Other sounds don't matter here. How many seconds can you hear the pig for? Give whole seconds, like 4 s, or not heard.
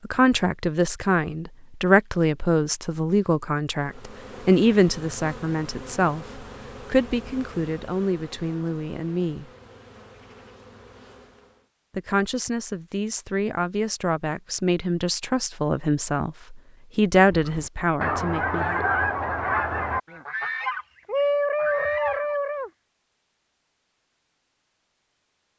not heard.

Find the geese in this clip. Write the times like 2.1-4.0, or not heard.
17.3-22.7.